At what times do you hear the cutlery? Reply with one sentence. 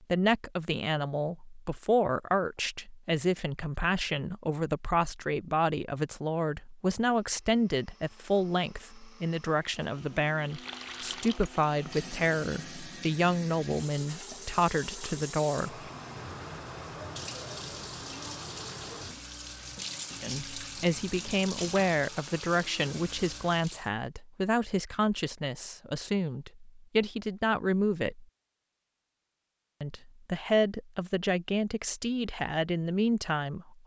You can't hear the cutlery here.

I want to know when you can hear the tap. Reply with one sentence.
The tap can be heard from 10.4 to 23.9 s.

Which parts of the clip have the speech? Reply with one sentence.
The speech can be heard from 0.1 to 15.8 s, from 20.2 to 28.2 s and from 29.8 to 33.8 s.